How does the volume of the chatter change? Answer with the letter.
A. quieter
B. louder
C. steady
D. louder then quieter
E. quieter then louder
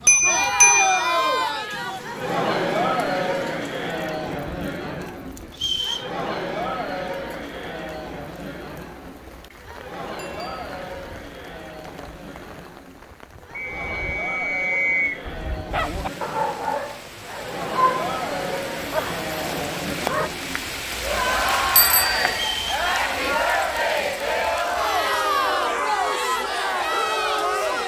E.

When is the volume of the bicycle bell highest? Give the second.
1 s.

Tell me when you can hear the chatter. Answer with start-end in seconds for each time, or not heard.
0.0-27.8.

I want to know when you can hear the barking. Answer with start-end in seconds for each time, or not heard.
15.2-20.3.